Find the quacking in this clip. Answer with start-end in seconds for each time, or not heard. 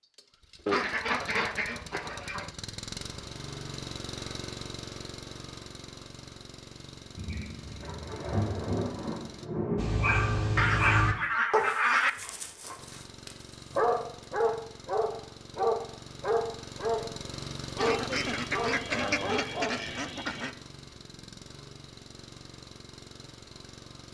0.7-2.5, 10.6-12.1, 17.8-20.6.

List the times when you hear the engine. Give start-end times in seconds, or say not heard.
0.0-9.5, 12.8-24.0.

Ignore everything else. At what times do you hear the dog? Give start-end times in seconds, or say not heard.
9.8-19.8.